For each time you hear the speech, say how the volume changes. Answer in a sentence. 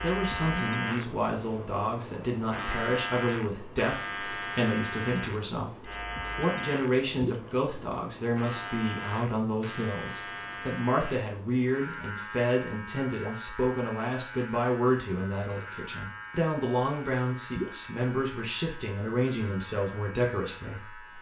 The speech can be heard from 0.0 to 21.1 s, at a steady volume.